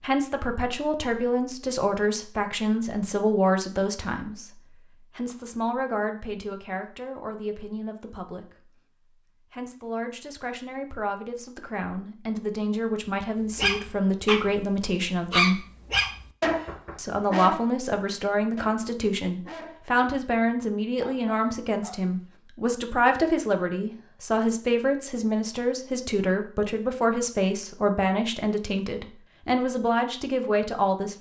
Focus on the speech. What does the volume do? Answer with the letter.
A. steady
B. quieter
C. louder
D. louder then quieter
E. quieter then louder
E.